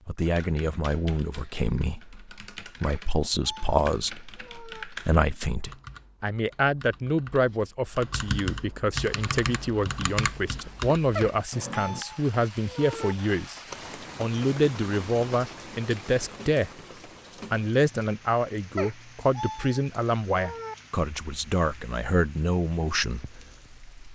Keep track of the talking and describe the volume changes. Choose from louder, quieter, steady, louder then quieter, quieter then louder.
steady.